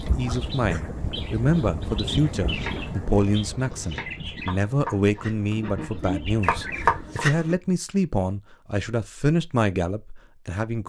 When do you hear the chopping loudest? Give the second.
7 s.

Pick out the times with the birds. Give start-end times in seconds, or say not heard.
0.0-7.2.